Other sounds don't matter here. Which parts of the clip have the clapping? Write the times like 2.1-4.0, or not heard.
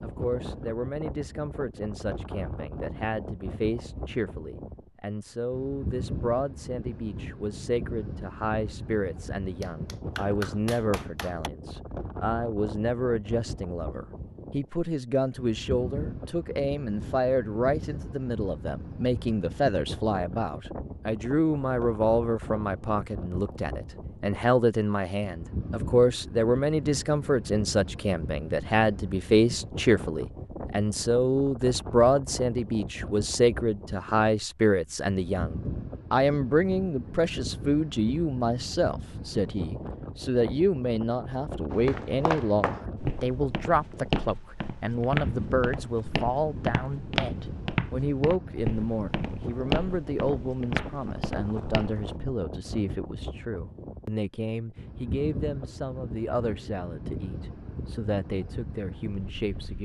9.6-11.5.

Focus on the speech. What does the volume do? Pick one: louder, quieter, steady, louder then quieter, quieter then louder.
louder then quieter.